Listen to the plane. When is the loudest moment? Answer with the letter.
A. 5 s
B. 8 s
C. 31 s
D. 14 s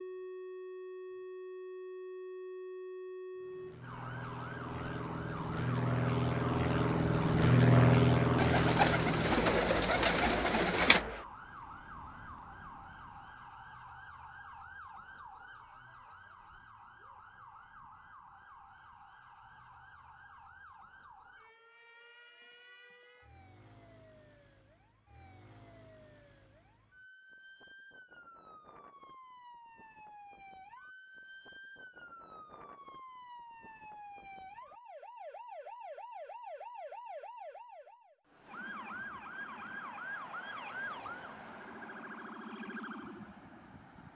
B.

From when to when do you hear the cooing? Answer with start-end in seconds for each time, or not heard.
8.3-11.1.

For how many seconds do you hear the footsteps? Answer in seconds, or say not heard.
not heard.